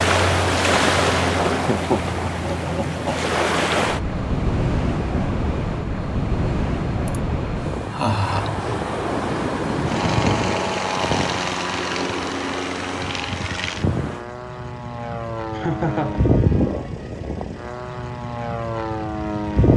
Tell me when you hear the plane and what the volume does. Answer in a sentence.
You can hear the plane from 0.2 to 19.7 s, getting louder.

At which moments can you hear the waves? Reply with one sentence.
You can hear the waves from 0.0 to 14.2 s.